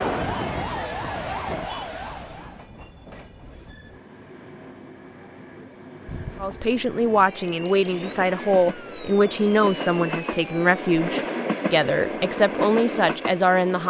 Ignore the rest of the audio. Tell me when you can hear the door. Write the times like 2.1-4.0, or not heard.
6.0-6.7.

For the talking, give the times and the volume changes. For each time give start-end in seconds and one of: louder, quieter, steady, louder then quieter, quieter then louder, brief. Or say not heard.
6.4-13.8 steady.